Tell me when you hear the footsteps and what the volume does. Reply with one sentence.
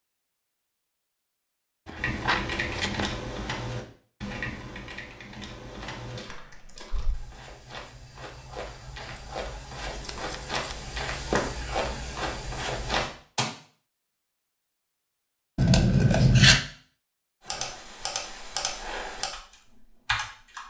The footsteps can be heard from 5.8 to 13.5 s, getting louder.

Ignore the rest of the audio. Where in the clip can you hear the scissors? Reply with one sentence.
You can hear the scissors from 1.9 to 3.1 s, from 10.0 to 10.9 s and from 15.6 to 16.6 s.